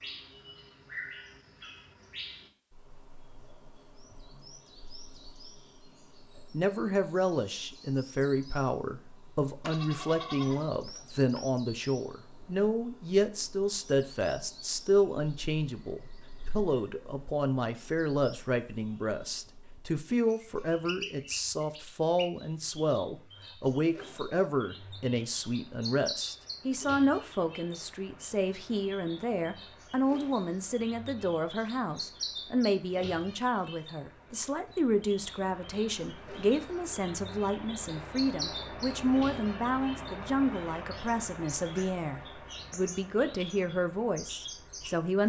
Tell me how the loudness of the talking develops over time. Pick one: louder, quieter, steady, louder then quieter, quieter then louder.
steady.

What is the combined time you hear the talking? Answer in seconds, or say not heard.
39 s.